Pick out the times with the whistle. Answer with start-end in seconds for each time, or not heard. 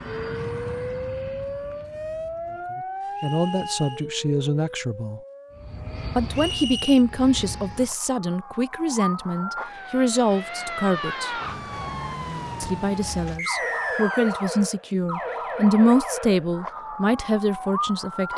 3.1-4.1, 6.3-7.0, 13.3-14.5.